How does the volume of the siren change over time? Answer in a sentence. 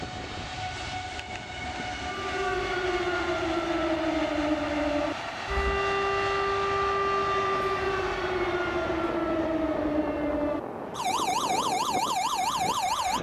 The volume of the siren stays about the same.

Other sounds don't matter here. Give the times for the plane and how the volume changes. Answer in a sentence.
You can hear the plane from 0.0 to 13.1 s, at a steady volume.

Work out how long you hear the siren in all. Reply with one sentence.
The siren can be heard for 11 seconds in total.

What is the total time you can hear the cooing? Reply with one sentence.
The cooing can't be heard in this clip.